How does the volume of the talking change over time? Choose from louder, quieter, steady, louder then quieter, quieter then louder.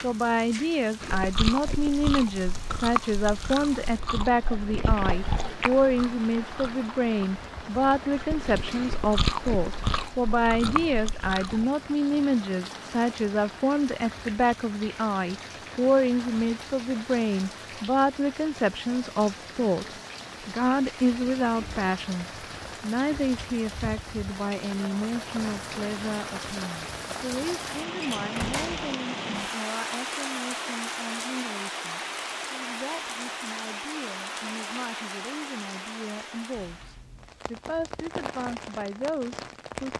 quieter.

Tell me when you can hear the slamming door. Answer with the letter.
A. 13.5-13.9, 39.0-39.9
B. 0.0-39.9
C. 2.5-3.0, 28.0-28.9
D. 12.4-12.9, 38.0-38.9
C.